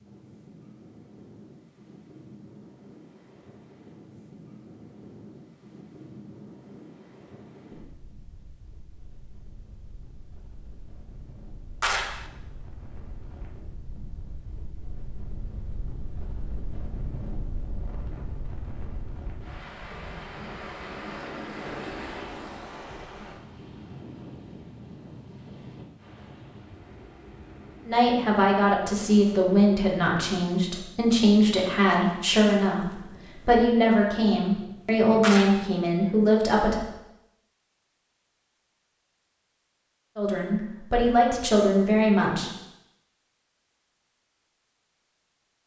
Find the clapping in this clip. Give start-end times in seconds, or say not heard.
11.8-12.2, 35.2-35.7.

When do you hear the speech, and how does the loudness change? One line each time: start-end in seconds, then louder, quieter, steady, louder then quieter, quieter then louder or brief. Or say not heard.
27.9-36.8 steady
40.1-42.5 brief.